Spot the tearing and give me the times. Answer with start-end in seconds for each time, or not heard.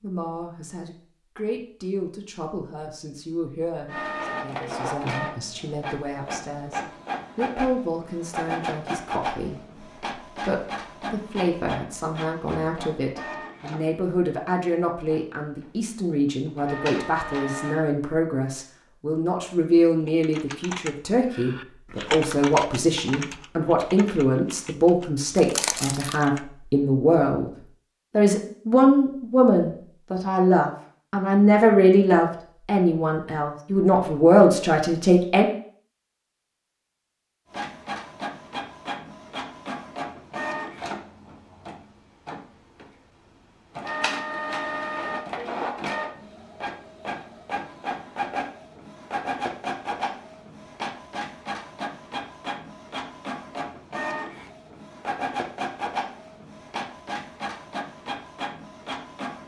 25.4-26.2.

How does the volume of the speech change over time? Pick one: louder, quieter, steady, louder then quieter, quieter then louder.
louder.